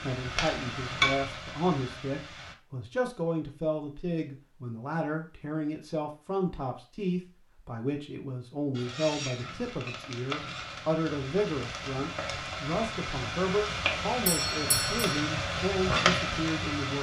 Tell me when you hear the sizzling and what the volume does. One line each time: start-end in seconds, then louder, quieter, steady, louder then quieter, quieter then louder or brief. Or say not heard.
0.0-2.5 brief
8.8-16.9 louder.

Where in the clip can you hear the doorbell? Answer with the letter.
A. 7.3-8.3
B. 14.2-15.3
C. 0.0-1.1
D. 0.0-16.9
B.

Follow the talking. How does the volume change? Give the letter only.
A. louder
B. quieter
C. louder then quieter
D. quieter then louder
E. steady
E.